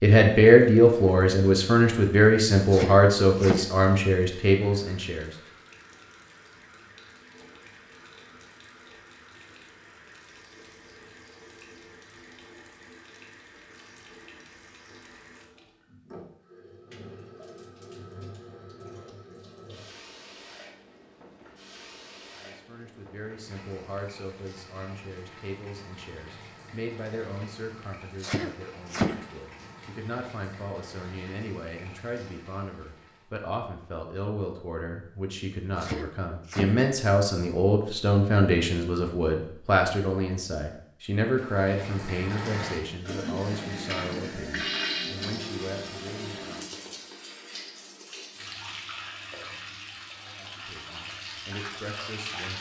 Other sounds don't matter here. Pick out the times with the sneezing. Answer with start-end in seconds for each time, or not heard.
2.7-3.6, 28.2-29.1, 35.8-36.8.